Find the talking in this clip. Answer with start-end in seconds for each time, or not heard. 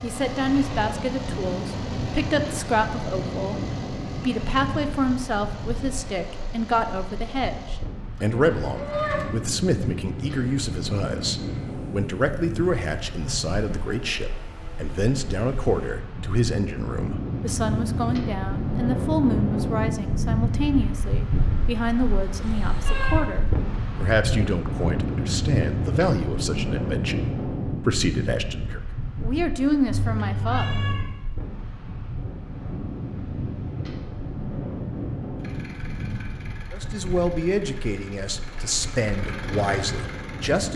0.0-30.8, 36.7-40.7.